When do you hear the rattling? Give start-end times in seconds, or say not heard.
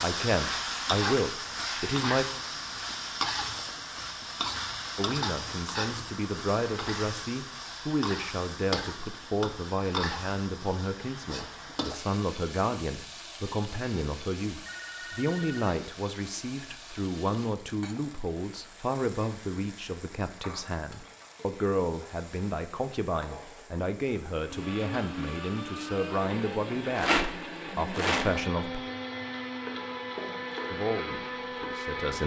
26.9-28.4.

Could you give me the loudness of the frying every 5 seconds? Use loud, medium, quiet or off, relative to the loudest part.
loud, loud, medium, quiet, quiet, quiet, medium.